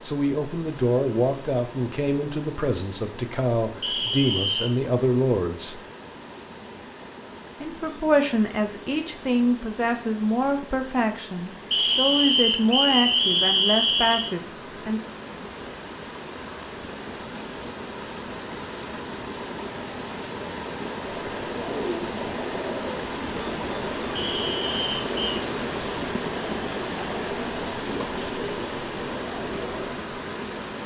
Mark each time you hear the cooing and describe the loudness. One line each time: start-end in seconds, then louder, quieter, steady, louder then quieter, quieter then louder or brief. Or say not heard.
21.1-29.9 steady.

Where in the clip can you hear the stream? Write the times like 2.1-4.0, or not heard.
0.0-30.8.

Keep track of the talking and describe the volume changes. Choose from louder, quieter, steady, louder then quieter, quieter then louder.
steady.